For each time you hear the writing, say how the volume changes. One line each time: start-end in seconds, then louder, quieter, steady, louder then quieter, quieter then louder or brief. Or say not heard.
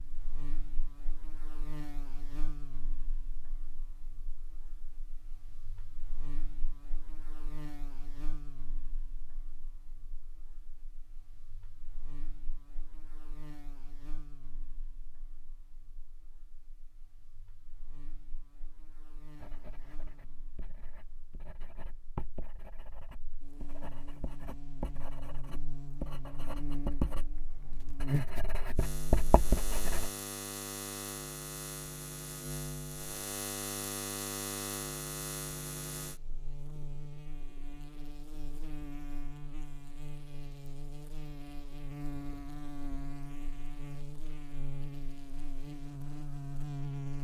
19.3-30.1 louder.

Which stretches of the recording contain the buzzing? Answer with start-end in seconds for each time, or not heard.
0.0-47.1.